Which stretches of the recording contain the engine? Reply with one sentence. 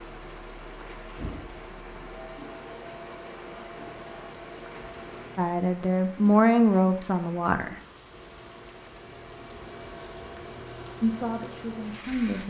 You can hear the engine from 0.0 to 5.4 s and from 8.1 to 12.4 s.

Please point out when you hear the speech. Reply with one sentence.
You can hear the speech from 5.3 to 7.8 s and from 11.0 to 12.4 s.